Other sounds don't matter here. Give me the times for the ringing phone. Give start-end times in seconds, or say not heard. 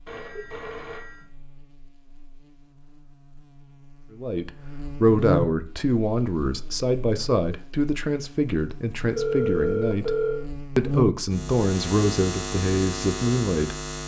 0.1-1.2, 8.7-10.4.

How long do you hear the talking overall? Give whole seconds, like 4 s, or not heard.
9 s.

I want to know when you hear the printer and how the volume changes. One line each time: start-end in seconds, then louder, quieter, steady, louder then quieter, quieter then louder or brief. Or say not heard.
not heard.